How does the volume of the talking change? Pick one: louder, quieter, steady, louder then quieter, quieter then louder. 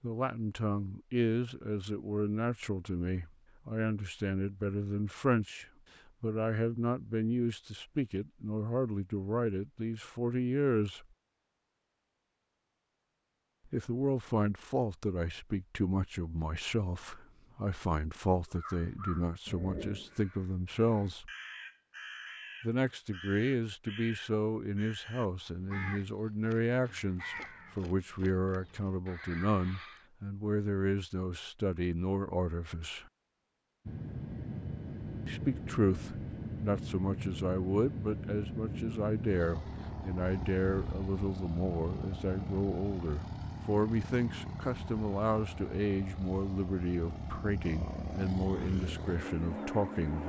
steady.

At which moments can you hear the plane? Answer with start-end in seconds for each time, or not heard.
33.9-50.2.